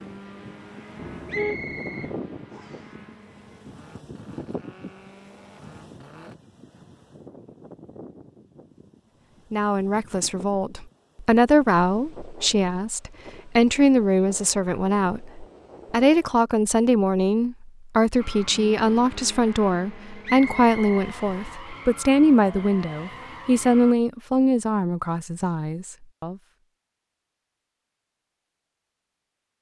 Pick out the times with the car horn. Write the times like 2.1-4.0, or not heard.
0.9-2.1.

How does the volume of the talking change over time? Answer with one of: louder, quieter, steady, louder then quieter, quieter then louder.
steady.